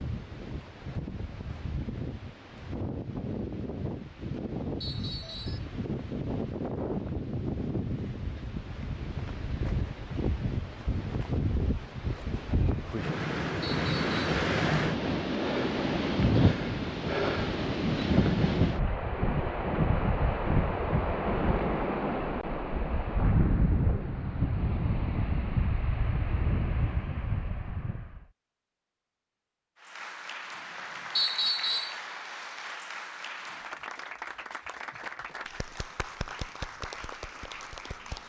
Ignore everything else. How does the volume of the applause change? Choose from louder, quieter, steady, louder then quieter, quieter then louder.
steady.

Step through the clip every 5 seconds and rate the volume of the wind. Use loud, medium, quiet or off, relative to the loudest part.
medium, medium, loud, loud, loud, medium, off, off.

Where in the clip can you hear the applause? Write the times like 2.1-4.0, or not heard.
29.8-38.2.